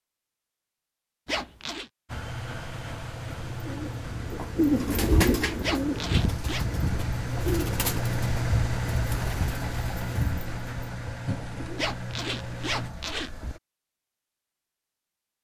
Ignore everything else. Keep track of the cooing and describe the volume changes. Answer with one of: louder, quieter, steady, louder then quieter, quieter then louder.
quieter.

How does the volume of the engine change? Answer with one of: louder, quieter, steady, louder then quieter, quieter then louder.
louder then quieter.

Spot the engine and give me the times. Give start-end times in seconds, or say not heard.
2.0-13.6.